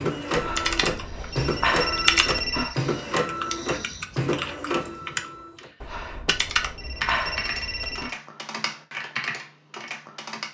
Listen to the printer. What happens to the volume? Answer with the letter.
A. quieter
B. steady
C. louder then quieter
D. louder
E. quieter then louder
B.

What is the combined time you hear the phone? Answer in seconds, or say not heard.
5 s.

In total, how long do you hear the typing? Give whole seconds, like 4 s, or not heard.
10 s.